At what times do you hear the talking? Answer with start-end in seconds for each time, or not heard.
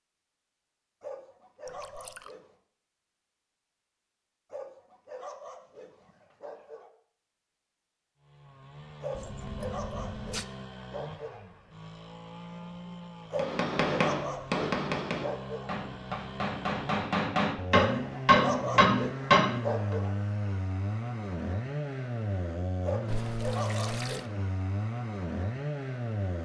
not heard.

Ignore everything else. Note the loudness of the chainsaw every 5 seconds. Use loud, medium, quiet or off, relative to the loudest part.
off, medium, medium, loud, loud, loud.